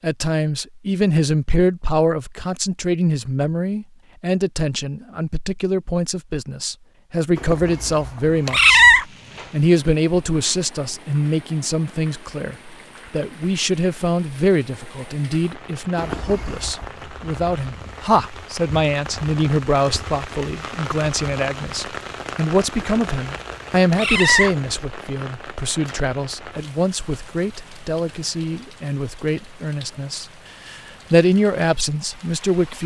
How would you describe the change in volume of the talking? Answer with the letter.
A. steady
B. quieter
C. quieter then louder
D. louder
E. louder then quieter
A.